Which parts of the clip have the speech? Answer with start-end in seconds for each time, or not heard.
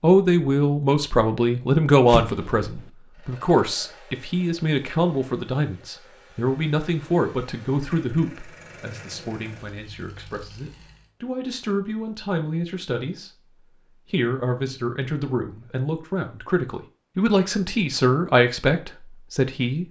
0.0-13.3, 14.1-19.8.